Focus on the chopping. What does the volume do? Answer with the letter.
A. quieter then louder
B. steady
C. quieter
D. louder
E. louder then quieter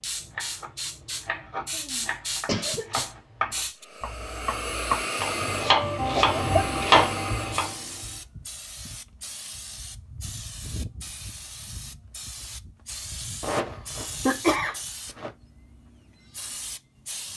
D.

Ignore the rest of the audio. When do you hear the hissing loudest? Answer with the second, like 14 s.
5 s.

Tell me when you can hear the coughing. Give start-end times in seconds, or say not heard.
1.7-3.5, 6.2-6.8, 13.4-15.3.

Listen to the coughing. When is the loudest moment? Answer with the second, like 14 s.
14 s.